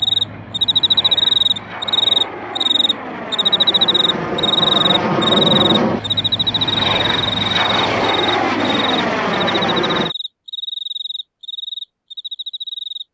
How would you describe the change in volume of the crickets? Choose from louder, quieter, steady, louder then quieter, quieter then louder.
quieter.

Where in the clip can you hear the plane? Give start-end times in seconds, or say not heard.
0.0-10.2.